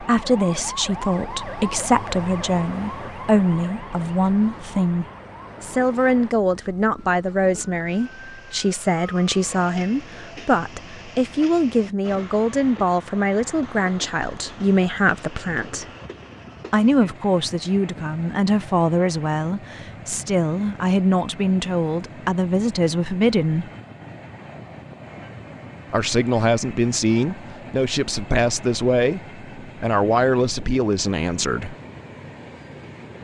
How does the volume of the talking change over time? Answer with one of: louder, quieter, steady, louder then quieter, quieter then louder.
steady.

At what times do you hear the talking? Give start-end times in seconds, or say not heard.
0.0-15.8, 16.7-23.7, 25.9-31.8.